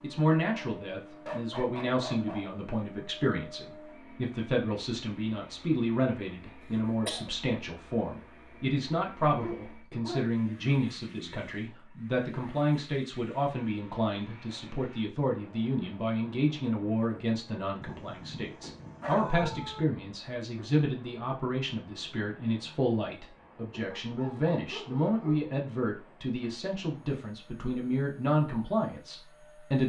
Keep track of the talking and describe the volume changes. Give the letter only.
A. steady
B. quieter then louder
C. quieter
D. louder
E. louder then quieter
A.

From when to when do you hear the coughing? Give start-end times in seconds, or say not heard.
6.6-7.3.